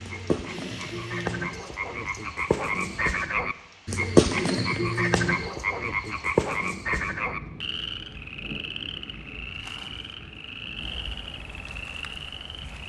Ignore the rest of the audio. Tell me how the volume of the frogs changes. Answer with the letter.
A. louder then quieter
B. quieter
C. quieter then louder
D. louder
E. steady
A.